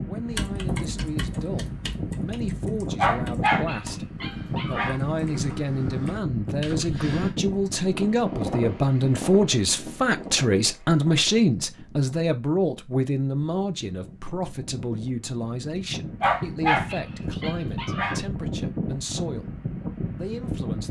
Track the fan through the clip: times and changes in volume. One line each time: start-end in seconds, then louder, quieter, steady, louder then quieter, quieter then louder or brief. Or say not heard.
0.0-20.8 quieter then louder.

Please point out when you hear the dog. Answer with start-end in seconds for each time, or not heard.
3.0-5.0, 16.2-18.2.